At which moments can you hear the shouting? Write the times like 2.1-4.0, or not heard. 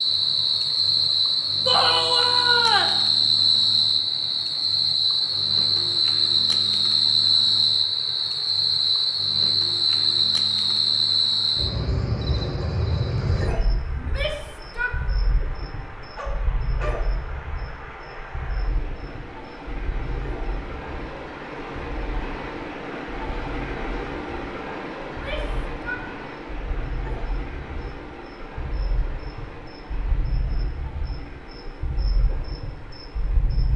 1.6-3.0, 13.9-15.0, 25.1-26.1.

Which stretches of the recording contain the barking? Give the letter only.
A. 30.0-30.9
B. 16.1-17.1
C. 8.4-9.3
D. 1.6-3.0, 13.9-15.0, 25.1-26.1
B.